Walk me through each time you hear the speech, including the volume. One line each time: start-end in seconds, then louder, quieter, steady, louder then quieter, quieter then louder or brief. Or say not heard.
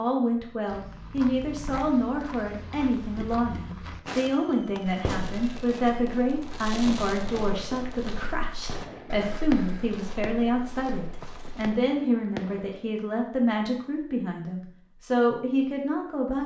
0.0-16.4 steady.